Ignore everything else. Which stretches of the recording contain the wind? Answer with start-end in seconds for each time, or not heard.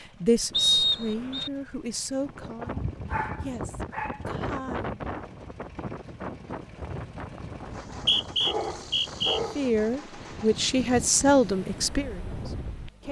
2.2-13.0.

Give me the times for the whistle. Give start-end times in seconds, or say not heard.
0.5-1.5, 7.8-9.4.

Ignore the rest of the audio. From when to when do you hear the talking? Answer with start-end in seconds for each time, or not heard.
0.0-5.0, 9.6-13.0.